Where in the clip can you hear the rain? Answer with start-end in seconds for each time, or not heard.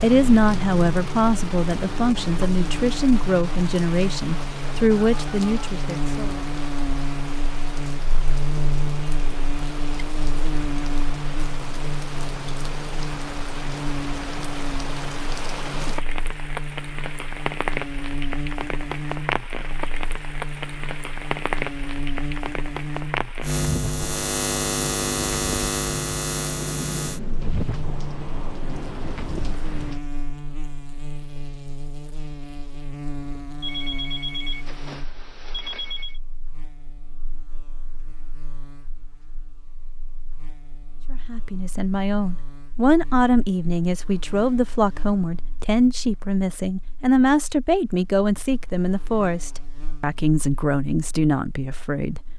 0.0-30.0.